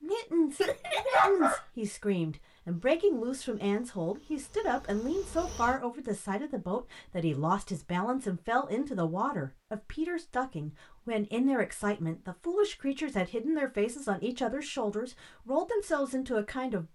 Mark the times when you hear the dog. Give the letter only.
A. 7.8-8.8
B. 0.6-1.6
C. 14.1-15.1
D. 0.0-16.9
B.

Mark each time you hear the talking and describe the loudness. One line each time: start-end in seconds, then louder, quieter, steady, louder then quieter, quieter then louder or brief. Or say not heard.
0.0-16.9 steady.